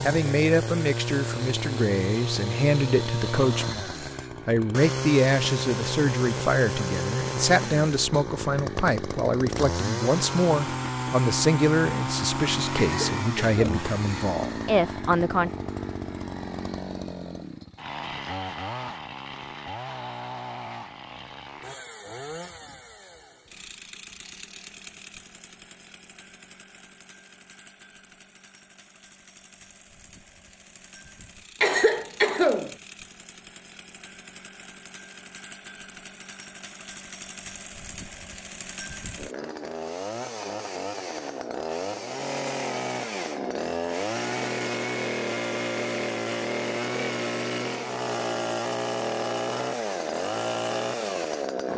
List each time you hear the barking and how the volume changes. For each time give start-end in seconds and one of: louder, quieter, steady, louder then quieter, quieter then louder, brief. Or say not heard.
not heard.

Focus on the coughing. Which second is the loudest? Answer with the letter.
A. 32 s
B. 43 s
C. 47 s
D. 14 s
A.